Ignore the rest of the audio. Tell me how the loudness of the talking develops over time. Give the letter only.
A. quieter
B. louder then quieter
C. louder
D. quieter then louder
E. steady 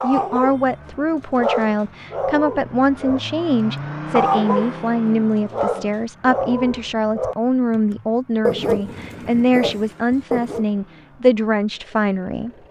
E.